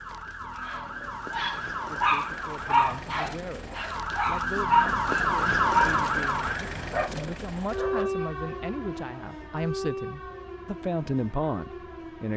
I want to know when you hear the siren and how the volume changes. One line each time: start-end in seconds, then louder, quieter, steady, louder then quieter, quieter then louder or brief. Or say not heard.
0.0-12.3 louder then quieter.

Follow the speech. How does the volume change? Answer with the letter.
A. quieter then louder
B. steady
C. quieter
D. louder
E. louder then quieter
D.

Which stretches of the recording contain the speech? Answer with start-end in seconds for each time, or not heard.
1.9-12.3.